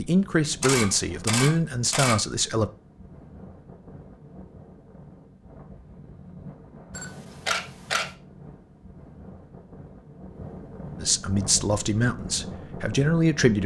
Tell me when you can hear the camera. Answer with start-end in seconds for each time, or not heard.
0.6-2.1, 7.0-8.2.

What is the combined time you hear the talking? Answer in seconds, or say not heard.
5 s.